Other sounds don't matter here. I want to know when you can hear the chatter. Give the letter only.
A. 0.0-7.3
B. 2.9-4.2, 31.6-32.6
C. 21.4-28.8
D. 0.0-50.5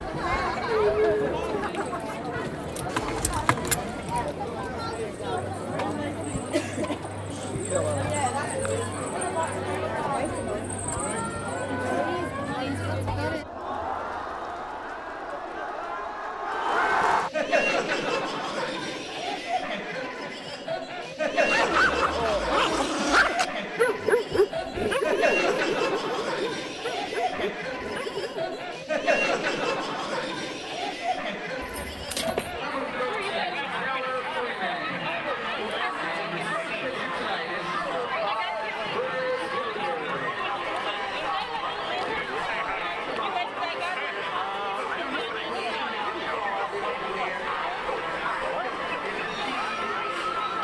D.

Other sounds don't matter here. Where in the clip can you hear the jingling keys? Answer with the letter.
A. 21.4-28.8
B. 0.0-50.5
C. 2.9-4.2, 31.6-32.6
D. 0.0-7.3
C.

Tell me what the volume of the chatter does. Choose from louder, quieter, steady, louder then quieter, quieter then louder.
steady.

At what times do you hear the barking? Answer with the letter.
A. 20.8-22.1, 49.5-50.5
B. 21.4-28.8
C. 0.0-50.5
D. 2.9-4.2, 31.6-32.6
B.